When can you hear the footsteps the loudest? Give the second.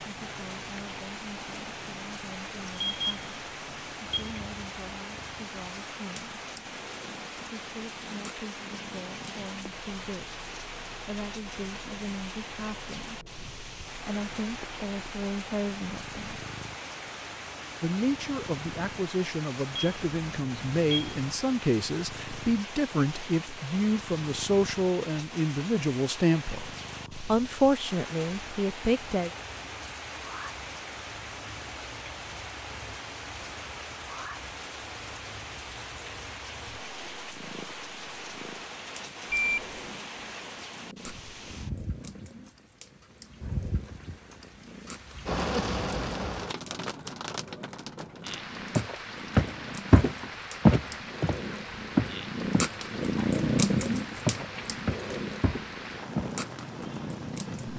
51 s.